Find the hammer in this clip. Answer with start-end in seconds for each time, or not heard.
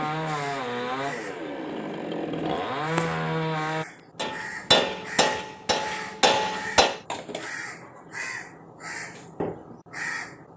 4.2-7.0.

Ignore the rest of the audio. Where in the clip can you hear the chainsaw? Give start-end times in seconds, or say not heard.
0.0-3.9.